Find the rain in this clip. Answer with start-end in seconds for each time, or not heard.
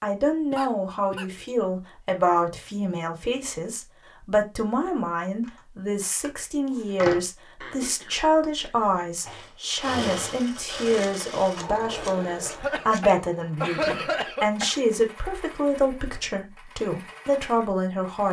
not heard.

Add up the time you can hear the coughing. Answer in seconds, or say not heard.
5 s.